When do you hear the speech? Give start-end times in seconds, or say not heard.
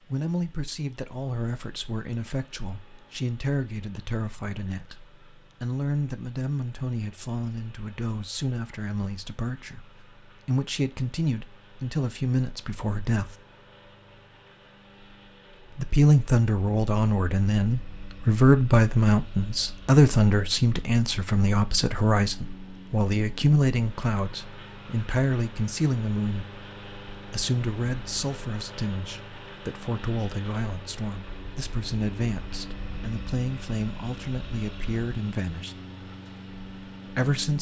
0.1-13.3, 15.8-35.8, 37.0-37.5.